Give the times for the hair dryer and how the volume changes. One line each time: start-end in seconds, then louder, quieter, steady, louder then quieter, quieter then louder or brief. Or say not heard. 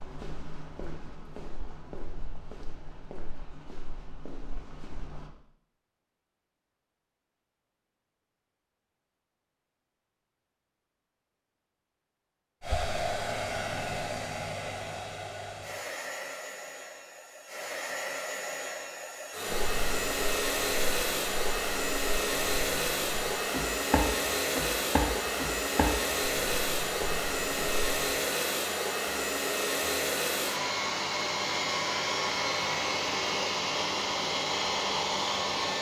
12.6-35.7 louder.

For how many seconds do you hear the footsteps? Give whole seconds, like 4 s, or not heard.
14 s.